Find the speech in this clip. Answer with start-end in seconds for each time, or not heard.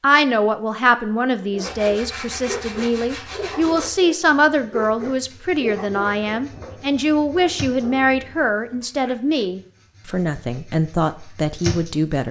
0.0-12.2.